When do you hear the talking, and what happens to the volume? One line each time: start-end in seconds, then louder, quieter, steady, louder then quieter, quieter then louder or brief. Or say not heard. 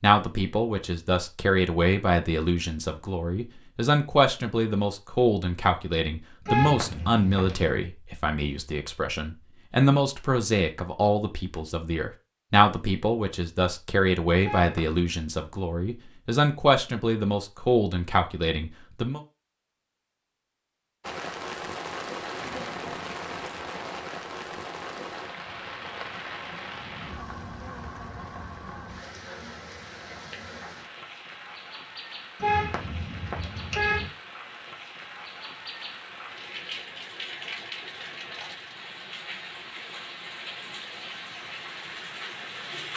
0.0-19.2 steady.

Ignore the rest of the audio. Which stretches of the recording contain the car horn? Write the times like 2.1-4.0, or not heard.
6.5-7.7, 14.4-15.0, 32.4-34.1.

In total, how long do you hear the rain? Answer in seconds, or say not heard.
22 s.